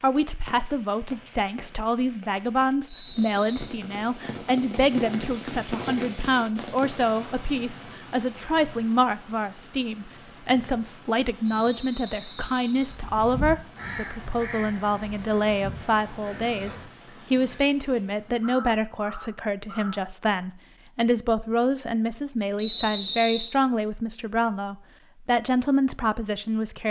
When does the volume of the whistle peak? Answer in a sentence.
The loudest moment of the whistle is at 23 seconds.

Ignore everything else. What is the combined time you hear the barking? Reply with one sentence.
The barking can't be heard in this clip.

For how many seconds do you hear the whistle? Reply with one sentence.
You can hear the whistle for 3 seconds altogether.